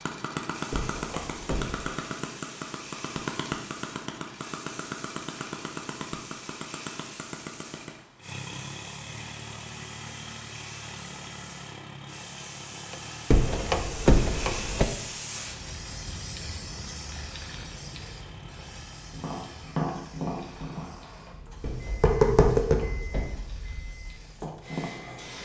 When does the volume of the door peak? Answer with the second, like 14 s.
14 s.